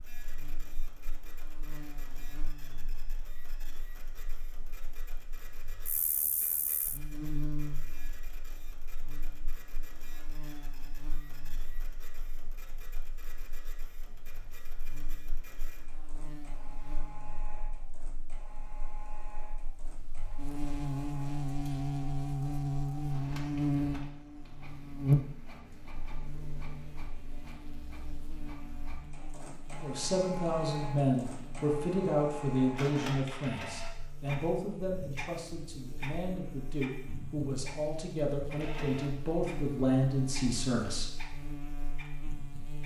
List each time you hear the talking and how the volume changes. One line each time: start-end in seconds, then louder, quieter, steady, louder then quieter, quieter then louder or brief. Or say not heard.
29.8-41.1 quieter then louder.